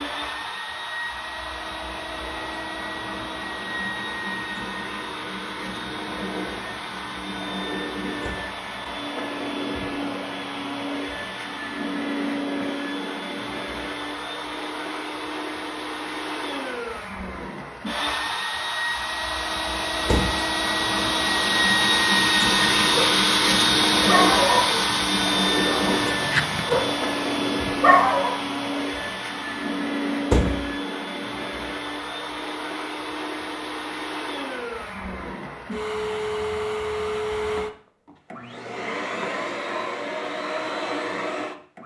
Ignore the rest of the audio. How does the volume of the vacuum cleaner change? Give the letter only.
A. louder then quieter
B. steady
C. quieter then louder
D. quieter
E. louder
A.